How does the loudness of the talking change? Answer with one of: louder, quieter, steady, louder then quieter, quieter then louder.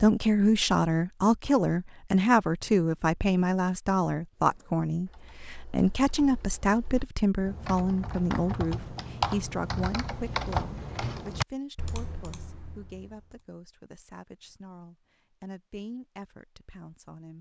quieter.